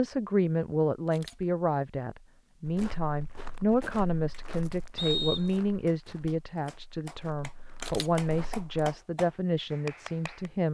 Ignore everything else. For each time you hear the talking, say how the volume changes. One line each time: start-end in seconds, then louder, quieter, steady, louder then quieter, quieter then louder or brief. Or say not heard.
0.0-10.6 steady.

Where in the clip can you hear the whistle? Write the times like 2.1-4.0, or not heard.
5.0-5.6.